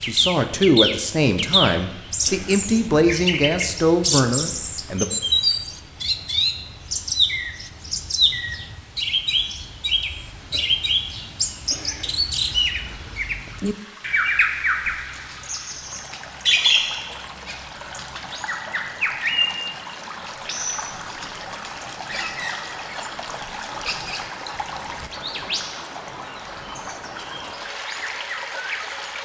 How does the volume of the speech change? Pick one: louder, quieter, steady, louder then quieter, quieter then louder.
steady.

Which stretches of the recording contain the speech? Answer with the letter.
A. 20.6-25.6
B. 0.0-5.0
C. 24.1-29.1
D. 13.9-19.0
B.